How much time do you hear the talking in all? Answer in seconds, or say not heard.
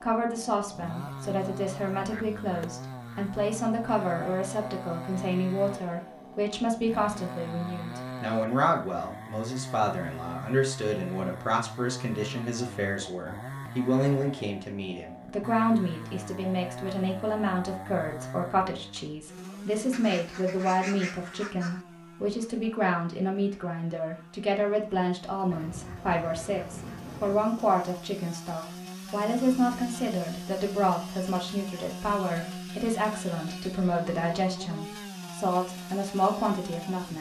37 s.